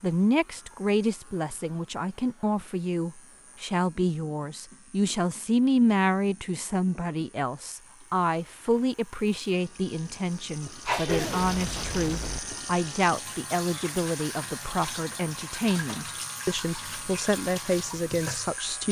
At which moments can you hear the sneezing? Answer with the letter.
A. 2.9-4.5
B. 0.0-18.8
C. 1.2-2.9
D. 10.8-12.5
D.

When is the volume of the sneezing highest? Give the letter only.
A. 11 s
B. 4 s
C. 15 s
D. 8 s
A.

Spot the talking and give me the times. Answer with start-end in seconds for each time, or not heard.
0.0-18.8.